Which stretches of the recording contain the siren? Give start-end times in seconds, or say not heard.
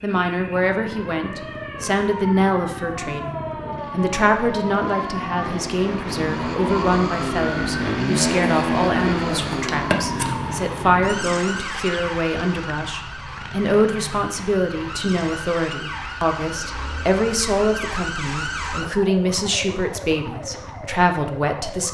0.0-21.9.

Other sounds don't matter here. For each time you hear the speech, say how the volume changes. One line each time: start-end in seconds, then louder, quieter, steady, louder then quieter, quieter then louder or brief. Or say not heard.
0.0-21.9 steady.